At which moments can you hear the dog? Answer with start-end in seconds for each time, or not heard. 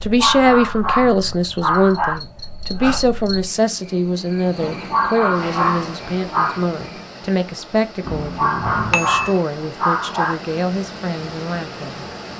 0.1-2.1, 4.9-6.6, 8.3-10.3.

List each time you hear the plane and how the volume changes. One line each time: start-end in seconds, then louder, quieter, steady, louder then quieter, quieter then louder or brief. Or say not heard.
not heard.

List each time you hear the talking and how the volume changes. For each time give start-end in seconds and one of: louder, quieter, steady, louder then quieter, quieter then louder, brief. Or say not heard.
0.0-12.1 quieter.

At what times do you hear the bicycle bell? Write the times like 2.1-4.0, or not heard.
8.0-9.4.